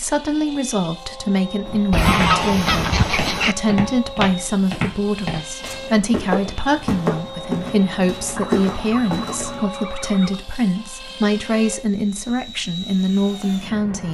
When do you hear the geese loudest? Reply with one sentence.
The loudest moment of the geese is at 2 seconds.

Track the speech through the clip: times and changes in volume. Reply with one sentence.
The speech can be heard from 0.0 to 14.0 s, at a steady volume.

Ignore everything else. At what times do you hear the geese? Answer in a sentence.
You can hear the geese from 1.9 to 3.5 s and from 8.3 to 10.4 s.